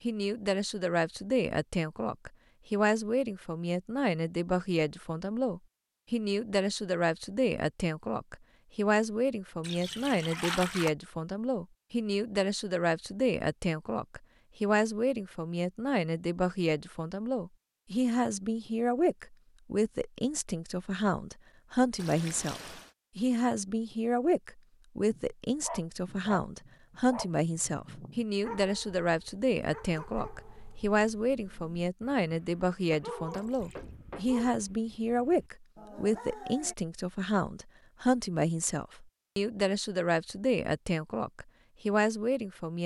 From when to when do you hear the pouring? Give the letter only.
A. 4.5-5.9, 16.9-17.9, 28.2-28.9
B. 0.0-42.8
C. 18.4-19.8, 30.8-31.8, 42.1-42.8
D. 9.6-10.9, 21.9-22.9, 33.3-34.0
D.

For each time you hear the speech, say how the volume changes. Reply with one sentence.
The speech can be heard from 0.0 to 42.8 s, at a steady volume.